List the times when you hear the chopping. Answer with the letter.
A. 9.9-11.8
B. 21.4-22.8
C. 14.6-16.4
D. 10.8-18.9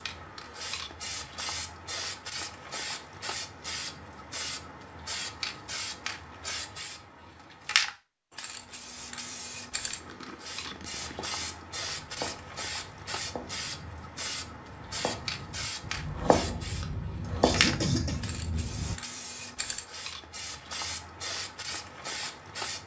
D.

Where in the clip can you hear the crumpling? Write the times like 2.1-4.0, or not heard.
9.9-11.8.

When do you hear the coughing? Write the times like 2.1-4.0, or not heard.
16.8-18.2.